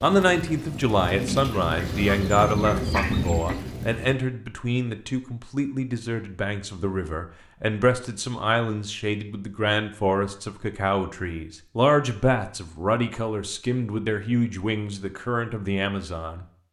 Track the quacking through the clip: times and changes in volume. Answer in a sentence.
You can hear the quacking from 0.0 to 4.2 s, getting louder.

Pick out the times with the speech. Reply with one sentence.
You can hear the speech from 0.0 to 16.4 s.